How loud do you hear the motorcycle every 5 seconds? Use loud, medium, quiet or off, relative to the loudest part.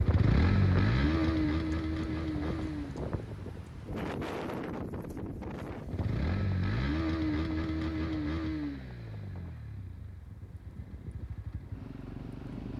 loud, loud, quiet.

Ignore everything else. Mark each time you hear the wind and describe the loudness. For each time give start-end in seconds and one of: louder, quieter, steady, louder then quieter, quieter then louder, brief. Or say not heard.
0.0-12.7 quieter.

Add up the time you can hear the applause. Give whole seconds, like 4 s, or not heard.
not heard.